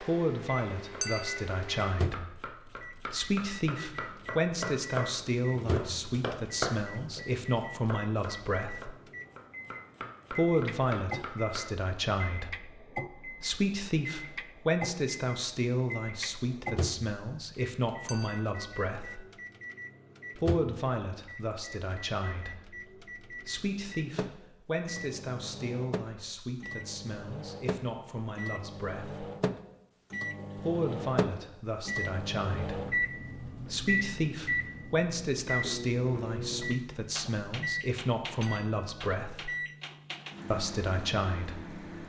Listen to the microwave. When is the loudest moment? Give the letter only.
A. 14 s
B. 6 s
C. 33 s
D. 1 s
C.